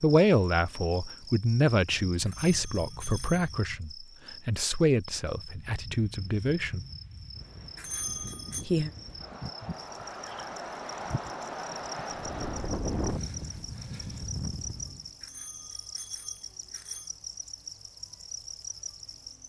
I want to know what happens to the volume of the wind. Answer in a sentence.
The volume of the wind goes up.